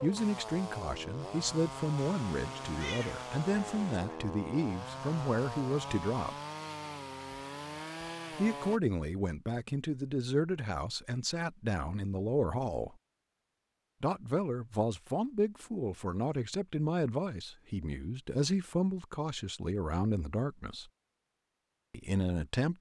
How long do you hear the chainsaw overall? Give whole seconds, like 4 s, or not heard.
9 s.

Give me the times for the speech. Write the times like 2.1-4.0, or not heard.
0.0-6.3, 8.3-12.9, 14.0-20.9, 21.9-22.7.